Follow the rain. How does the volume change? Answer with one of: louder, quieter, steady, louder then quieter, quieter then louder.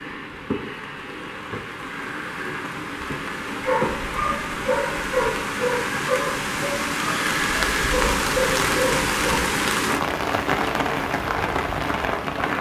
louder.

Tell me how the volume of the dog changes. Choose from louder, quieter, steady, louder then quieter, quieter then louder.
steady.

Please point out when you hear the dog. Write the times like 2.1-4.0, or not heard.
3.5-9.6.